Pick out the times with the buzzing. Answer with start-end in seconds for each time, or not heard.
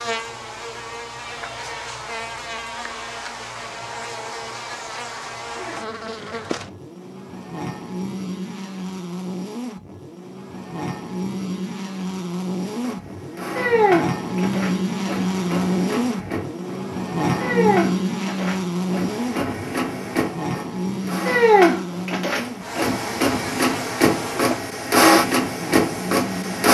0.0-26.6.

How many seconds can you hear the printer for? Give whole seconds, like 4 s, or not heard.
14 s.